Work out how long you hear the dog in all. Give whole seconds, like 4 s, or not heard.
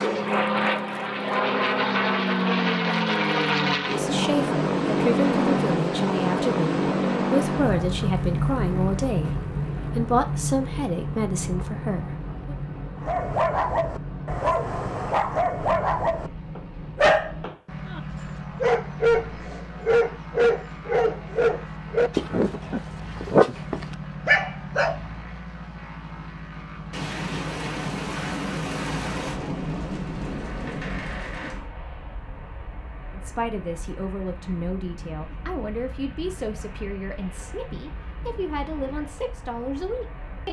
12 s.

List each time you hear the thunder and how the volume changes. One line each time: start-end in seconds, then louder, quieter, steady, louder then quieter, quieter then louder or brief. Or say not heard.
26.9-31.6 steady.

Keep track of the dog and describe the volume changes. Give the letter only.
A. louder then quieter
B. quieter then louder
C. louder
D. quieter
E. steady
E.